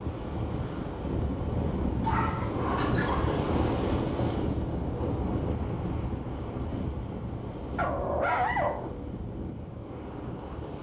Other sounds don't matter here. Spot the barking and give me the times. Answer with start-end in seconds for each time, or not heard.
2.0-3.6, 7.8-8.9.